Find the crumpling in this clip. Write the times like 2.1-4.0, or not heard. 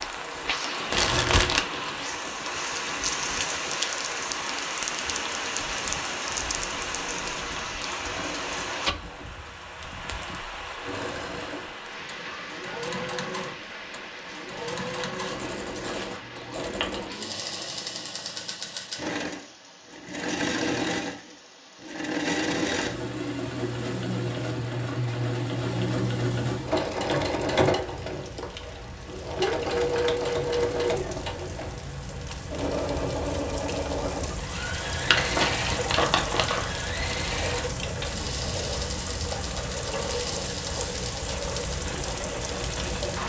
0.9-1.6, 14.6-17.0, 35.0-36.7.